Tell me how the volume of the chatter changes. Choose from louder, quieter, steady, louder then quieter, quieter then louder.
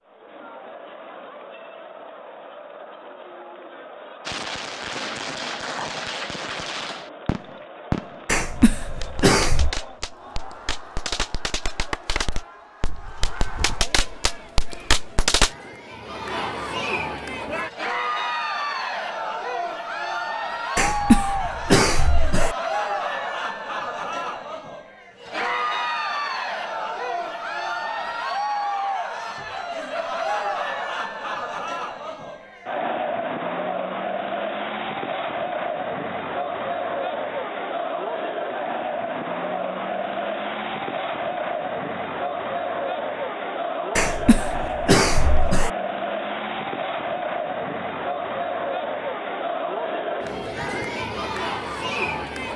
louder.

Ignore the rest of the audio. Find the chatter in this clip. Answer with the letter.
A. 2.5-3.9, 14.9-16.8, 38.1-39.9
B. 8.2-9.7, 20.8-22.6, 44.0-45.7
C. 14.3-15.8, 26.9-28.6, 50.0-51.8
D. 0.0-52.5
D.